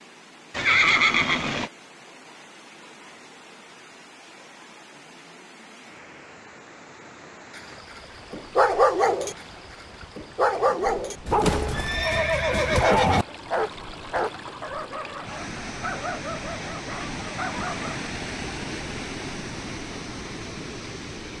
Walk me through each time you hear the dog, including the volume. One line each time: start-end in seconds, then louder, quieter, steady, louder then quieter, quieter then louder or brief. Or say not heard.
7.5-9.3 brief
10.2-18.1 quieter.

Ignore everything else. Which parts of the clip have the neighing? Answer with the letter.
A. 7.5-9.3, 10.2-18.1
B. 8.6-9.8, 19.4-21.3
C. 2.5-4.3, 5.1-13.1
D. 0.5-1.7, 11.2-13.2
D.